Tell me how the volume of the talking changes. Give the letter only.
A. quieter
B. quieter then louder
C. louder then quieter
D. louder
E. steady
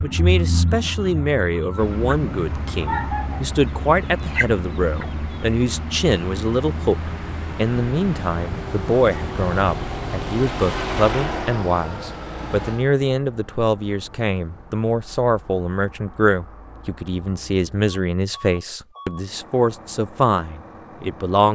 E.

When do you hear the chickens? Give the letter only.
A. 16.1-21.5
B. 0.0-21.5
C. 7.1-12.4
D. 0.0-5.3
D.